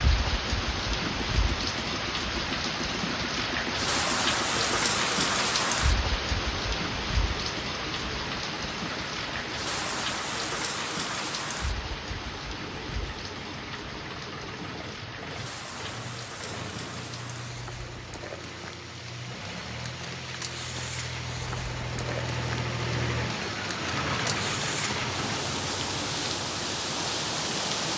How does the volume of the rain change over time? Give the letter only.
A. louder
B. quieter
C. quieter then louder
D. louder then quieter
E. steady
C.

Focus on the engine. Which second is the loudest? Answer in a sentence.
The loudest moment of the engine is at 23 seconds.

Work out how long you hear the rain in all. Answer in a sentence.
You can hear the rain for 28 seconds altogether.